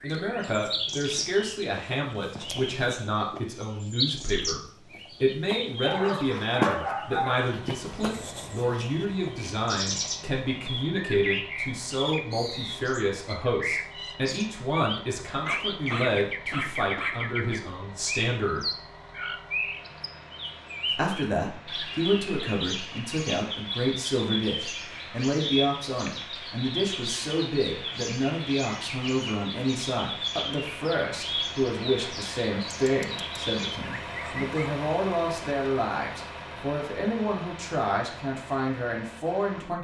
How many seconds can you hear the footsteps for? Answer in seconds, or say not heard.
not heard.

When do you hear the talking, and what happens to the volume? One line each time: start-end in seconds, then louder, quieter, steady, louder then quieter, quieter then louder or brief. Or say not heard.
0.0-18.6 steady
20.9-39.8 steady.